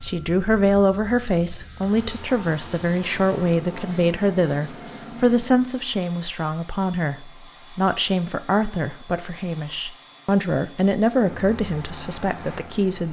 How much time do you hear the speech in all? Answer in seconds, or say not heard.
13 s.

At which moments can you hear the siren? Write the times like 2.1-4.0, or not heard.
not heard.